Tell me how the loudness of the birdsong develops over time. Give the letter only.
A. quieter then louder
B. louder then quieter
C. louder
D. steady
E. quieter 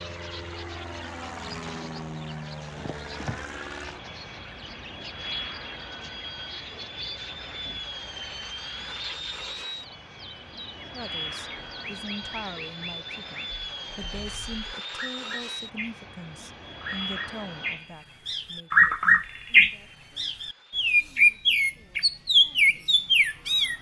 C.